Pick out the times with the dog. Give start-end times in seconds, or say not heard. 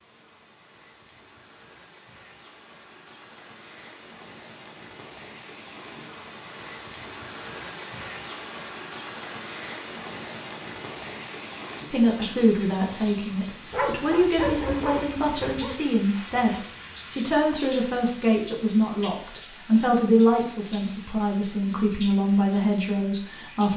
13.7-15.8.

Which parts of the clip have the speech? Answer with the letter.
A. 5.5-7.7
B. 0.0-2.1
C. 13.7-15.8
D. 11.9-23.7
D.